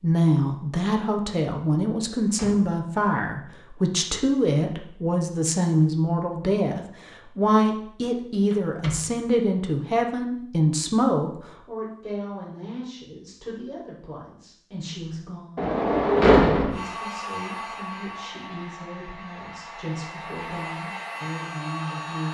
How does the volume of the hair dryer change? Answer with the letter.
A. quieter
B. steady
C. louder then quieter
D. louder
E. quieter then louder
E.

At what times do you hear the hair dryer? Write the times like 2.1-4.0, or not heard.
16.7-22.2.